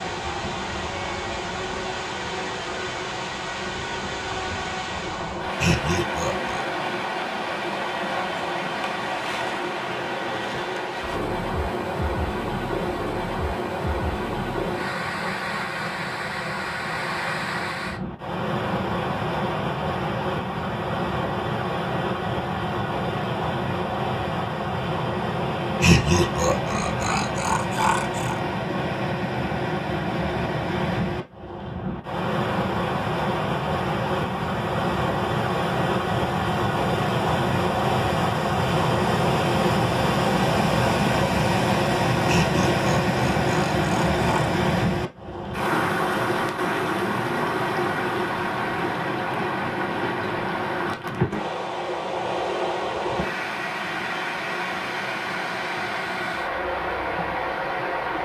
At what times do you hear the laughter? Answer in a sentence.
The laughter can be heard from 5.5 to 6.7 s, from 25.8 to 28.4 s and from 42.2 to 44.5 s.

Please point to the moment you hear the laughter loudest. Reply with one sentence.
The volume of the laughter peaks at 26 seconds.